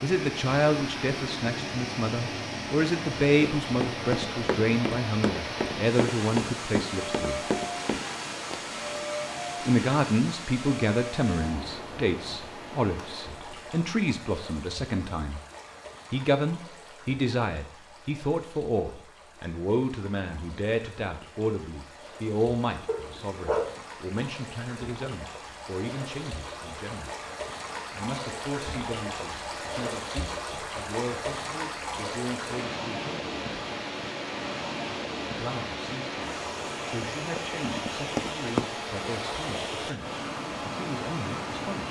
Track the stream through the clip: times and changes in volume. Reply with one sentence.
The stream can be heard from 0.0 to 41.8 s, getting quieter then louder.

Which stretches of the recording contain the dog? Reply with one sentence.
You can hear the dog from 22.9 to 23.9 s.